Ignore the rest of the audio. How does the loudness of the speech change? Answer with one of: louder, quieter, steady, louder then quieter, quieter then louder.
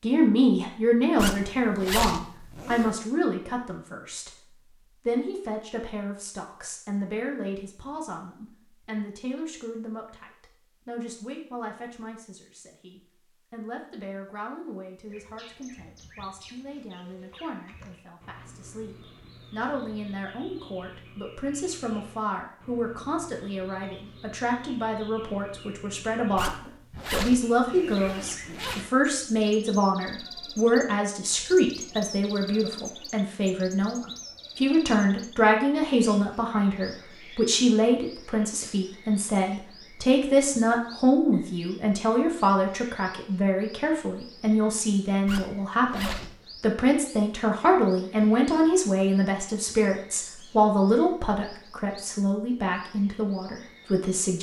quieter then louder.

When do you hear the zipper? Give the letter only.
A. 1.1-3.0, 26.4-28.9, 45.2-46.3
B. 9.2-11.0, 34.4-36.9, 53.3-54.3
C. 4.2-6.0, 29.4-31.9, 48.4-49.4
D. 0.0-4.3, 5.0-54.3
A.